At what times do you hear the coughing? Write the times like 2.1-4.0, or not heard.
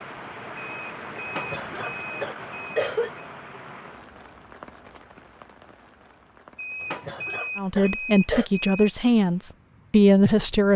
1.2-3.1, 6.8-8.5.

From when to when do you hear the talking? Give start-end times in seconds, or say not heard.
7.5-10.7.